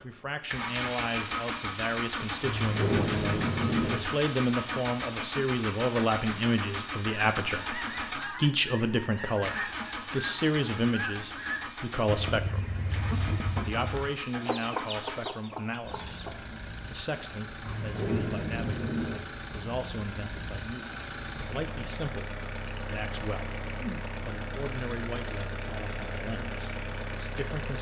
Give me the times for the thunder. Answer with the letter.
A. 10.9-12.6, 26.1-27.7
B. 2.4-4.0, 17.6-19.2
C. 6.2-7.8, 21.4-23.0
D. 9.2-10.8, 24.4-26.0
B.